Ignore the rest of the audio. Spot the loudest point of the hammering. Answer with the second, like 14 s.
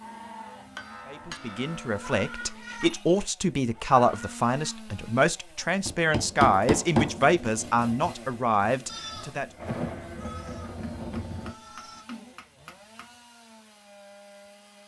7 s.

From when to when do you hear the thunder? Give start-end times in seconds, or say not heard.
9.6-11.6.